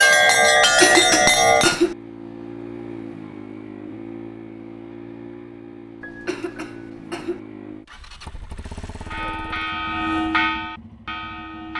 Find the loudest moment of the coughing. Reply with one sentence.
The volume of the coughing peaks at 1 second.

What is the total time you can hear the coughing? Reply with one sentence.
The coughing can be heard for 3 seconds in total.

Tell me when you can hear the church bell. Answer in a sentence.
The church bell can be heard from 0.0 to 1.8 s and from 9.0 to 11.7 s.